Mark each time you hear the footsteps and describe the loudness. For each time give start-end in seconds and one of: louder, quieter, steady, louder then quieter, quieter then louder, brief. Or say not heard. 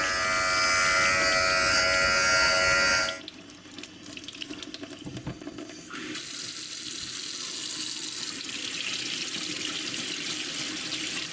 not heard.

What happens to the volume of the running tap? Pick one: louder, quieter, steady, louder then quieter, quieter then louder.
louder.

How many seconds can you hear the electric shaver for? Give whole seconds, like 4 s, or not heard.
3 s.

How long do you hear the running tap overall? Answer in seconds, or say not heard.
11 s.